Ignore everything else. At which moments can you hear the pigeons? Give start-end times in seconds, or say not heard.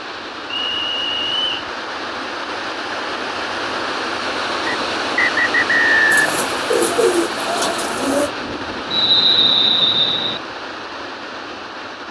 6.1-8.3.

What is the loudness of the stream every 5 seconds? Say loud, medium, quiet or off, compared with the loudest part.
loud, loud, medium.